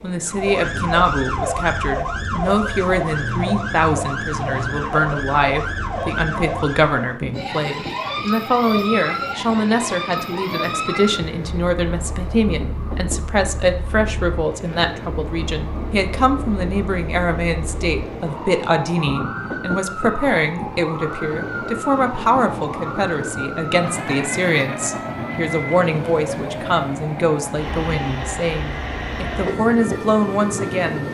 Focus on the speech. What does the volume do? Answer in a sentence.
The volume of the speech stays about the same.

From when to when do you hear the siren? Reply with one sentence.
You can hear the siren from 0.0 to 31.0 s.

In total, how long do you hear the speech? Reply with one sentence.
The speech can be heard for 31 seconds in total.